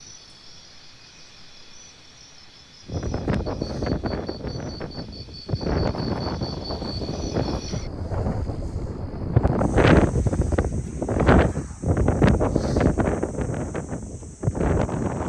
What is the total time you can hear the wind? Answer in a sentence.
You can hear the wind for 12 seconds altogether.